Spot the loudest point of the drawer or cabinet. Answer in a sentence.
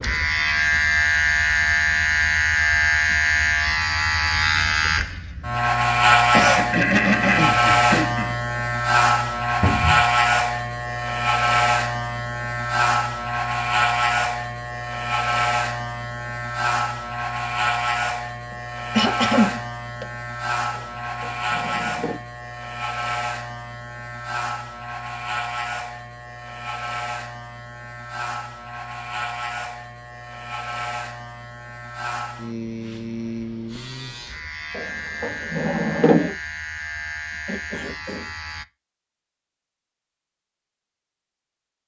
The loudest moment of the drawer or cabinet is at 36 seconds.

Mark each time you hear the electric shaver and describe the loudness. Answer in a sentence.
The electric shaver can be heard from 0.0 to 38.6 s, getting quieter.